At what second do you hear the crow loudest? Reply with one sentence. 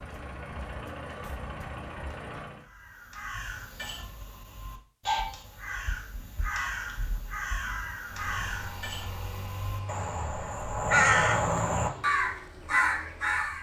The loudest moment of the crow is at 11 seconds.